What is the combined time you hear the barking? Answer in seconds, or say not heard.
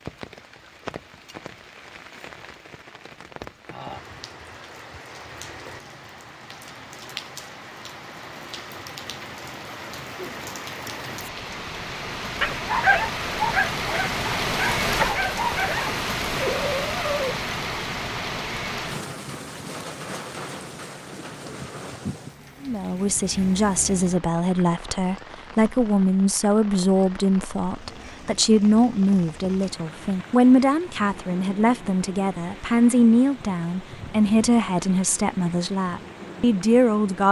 5 s.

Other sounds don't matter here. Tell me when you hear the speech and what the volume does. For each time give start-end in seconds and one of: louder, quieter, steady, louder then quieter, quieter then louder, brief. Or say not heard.
22.6-37.2 steady.